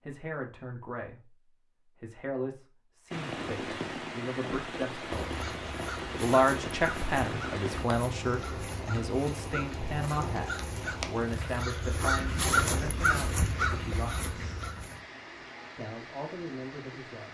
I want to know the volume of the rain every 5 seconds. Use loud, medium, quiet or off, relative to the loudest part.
loud, loud, loud, medium.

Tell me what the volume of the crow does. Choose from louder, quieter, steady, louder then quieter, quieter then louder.
louder.